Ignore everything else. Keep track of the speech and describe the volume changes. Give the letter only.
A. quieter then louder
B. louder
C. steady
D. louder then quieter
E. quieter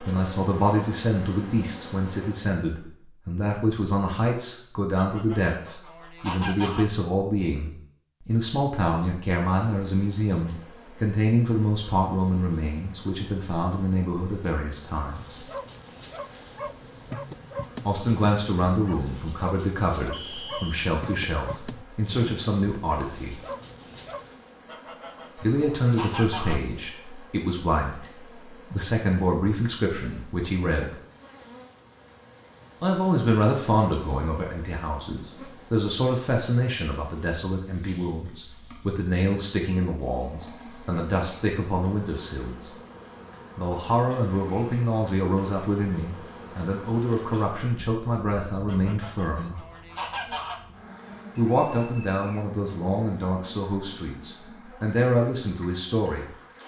C.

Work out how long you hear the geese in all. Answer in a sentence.
You can hear the geese for 6 seconds altogether.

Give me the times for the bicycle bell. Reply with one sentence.
The bicycle bell can't be heard in this clip.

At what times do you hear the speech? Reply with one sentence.
You can hear the speech from 0.0 to 15.4 s, from 17.9 to 23.4 s, from 25.4 to 30.9 s, from 32.8 to 42.7 s, from 43.5 to 49.6 s and from 51.4 to 56.2 s.